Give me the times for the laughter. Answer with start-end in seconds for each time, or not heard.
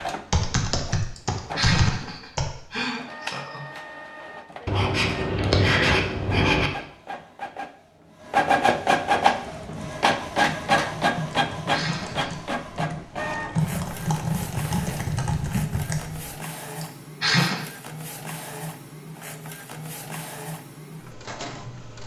1.1-3.6, 11.3-12.4, 16.8-17.6.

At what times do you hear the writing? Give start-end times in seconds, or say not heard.
4.7-6.7.